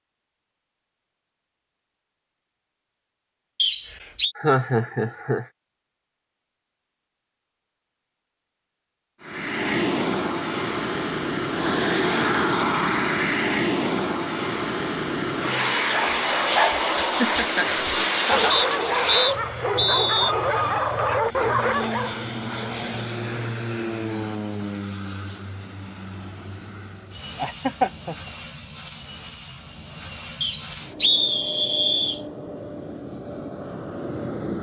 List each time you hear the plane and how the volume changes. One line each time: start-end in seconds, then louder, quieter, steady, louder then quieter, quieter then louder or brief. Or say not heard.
9.2-34.5 quieter.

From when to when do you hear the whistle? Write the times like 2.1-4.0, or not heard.
3.5-4.3, 18.5-20.4, 30.4-32.2.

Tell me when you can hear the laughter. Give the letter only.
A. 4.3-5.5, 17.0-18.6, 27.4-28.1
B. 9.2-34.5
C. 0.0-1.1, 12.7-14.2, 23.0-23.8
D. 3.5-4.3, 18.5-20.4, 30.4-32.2
A.